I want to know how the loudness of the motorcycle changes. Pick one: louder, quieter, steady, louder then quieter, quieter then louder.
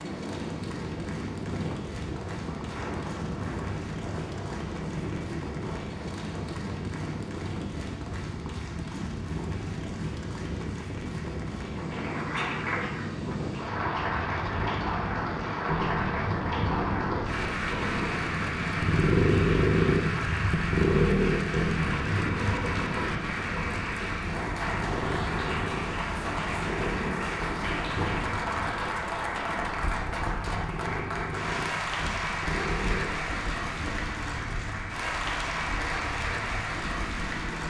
louder then quieter.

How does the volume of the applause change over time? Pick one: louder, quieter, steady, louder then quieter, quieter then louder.
louder.